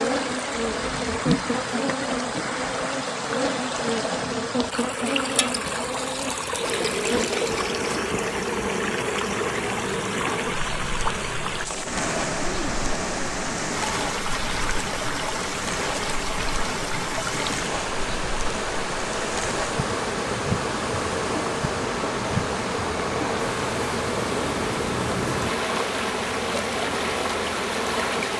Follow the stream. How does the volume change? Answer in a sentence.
The loudness of the stream stays about the same.